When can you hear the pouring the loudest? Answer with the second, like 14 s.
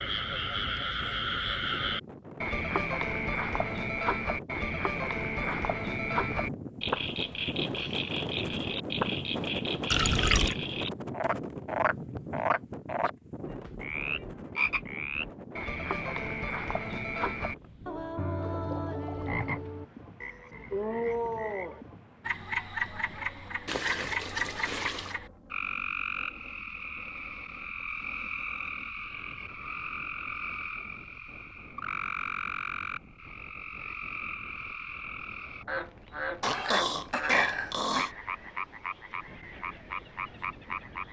10 s.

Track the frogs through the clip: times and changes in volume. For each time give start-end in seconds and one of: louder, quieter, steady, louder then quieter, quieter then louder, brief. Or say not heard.
0.0-41.0 quieter.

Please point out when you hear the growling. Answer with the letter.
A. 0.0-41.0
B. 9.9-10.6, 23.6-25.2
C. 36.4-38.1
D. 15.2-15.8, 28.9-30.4
C.